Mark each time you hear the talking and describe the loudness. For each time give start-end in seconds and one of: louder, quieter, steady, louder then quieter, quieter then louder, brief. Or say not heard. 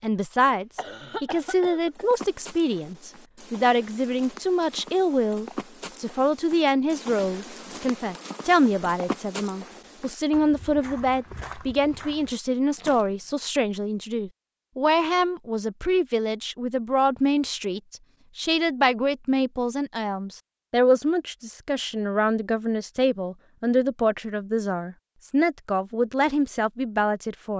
0.0-27.5 steady.